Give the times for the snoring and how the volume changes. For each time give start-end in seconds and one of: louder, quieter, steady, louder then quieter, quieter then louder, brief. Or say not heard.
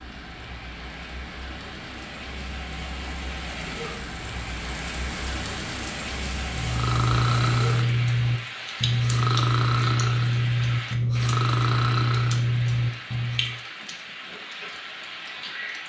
6.5-13.6 steady.